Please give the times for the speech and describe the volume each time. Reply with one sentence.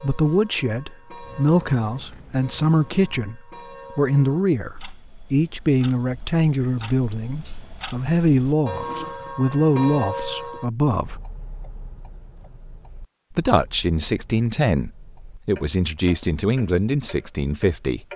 You can hear the speech from 0.0 to 11.2 s, at a steady volume; and from 13.3 to 18.0 s, at a steady volume.